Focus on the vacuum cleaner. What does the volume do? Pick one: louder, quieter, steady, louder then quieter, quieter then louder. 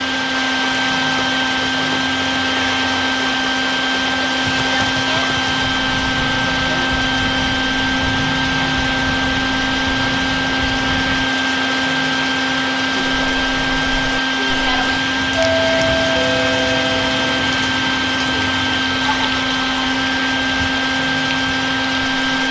steady.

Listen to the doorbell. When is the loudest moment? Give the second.
16 s.